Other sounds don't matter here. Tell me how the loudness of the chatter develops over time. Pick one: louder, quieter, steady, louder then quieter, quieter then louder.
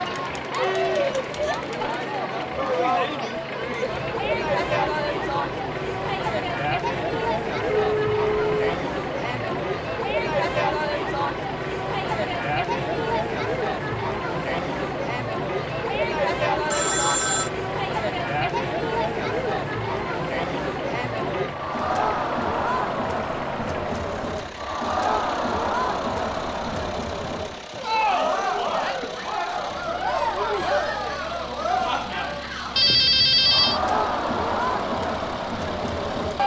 steady.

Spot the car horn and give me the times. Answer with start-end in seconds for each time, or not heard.
not heard.